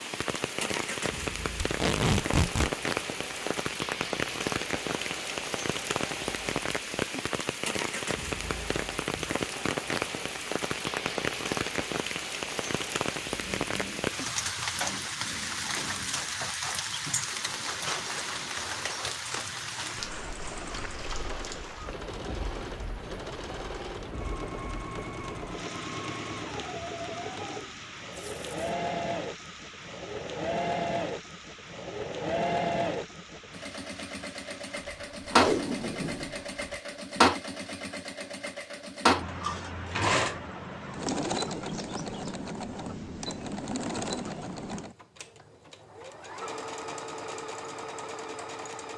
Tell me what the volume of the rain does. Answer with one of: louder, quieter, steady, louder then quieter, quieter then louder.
quieter.